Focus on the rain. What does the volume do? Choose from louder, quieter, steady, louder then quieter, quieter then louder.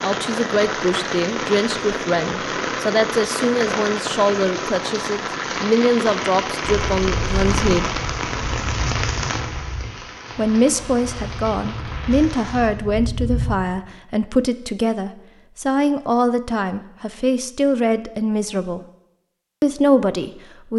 quieter.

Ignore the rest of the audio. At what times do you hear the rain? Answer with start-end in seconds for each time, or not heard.
0.0-12.7.